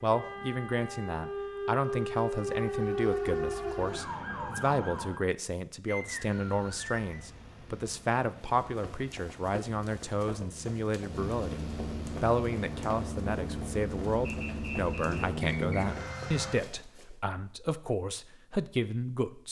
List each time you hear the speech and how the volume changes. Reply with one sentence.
You can hear the speech from 0.0 to 19.4 s, at a steady volume.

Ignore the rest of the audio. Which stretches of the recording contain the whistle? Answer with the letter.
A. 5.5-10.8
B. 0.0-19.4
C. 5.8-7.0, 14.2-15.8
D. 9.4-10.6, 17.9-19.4
C.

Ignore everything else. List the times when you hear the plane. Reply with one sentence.
The plane can be heard from 6.0 to 16.6 s.